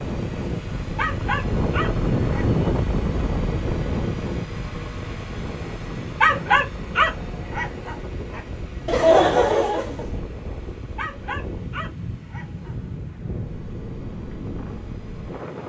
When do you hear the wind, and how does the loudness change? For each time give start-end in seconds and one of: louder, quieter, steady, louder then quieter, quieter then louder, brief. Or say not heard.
0.0-15.6 quieter.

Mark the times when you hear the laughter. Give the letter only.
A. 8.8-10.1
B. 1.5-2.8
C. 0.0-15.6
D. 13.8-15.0
A.